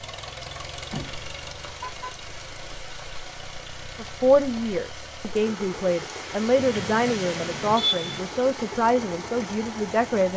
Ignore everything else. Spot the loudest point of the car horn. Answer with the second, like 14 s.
8 s.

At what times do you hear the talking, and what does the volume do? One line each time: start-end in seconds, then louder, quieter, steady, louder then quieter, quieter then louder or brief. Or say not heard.
4.0-10.3 steady.